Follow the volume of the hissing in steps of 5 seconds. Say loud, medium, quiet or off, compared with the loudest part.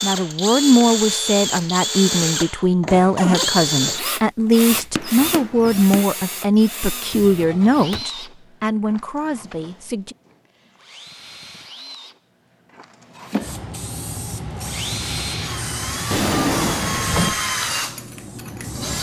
off, off, loud, loud.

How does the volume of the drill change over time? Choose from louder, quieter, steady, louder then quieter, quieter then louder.
quieter then louder.